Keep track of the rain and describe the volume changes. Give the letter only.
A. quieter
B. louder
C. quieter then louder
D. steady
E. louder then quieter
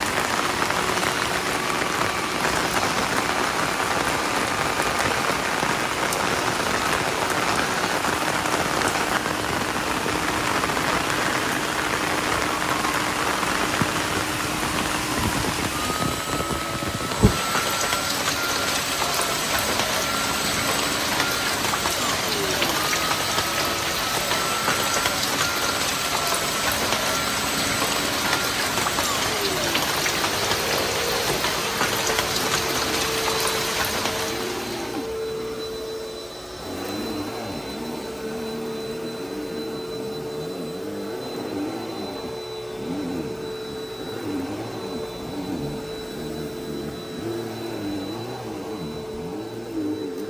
D.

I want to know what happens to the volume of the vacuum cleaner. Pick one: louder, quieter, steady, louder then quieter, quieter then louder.
steady.